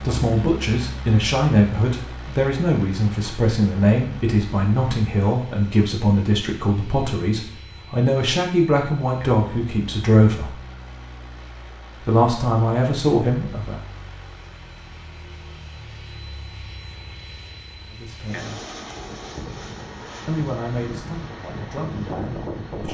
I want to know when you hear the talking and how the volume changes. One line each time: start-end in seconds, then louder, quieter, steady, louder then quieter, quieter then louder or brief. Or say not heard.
0.0-10.6 steady
12.0-13.8 brief
17.9-18.6 brief
20.2-22.8 brief.